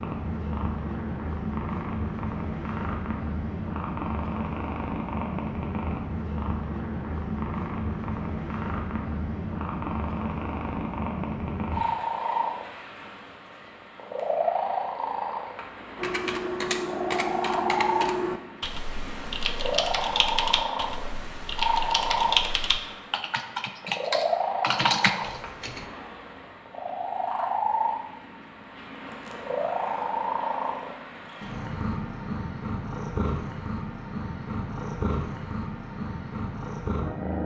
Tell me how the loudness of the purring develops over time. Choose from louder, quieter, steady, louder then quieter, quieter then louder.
steady.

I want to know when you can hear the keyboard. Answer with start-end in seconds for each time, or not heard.
15.9-25.9.